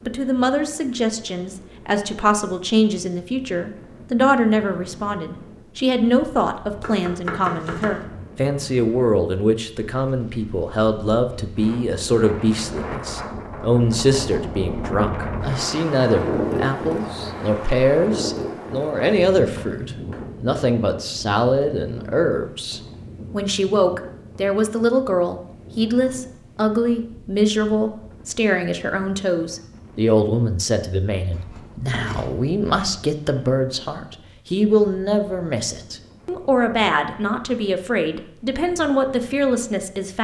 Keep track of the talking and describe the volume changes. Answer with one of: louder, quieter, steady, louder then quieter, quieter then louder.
steady.